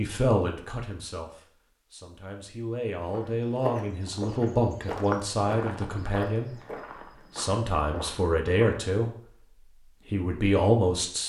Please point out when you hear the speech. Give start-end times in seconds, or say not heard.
0.0-6.5, 7.3-9.1, 10.1-11.2.